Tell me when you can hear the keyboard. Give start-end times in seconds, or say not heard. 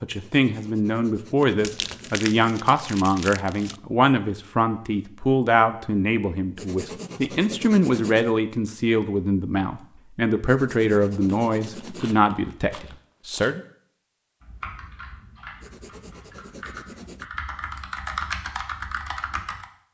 14.4-19.6.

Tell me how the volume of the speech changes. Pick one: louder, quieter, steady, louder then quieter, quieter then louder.
steady.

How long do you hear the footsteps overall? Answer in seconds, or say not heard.
not heard.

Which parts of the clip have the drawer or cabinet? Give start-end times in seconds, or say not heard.
not heard.